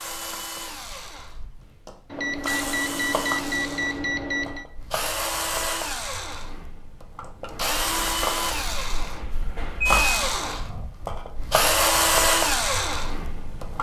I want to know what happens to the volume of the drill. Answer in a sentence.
The loudness of the drill goes up.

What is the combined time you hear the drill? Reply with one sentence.
The drill can be heard for 14 seconds in total.